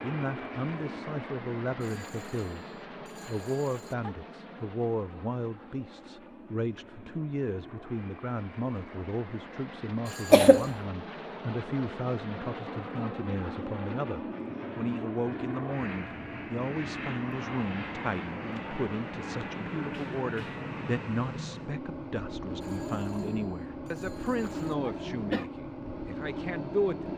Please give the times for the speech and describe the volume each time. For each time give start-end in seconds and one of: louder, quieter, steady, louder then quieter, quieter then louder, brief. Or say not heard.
0.0-27.1 steady.